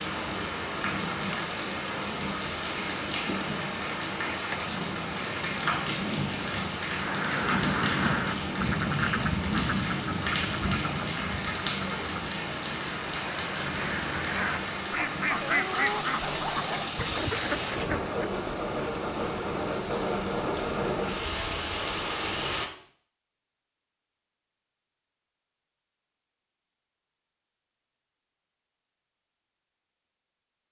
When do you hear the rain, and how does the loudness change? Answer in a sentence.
You can hear the rain from 0.0 to 22.7 s, at a steady volume.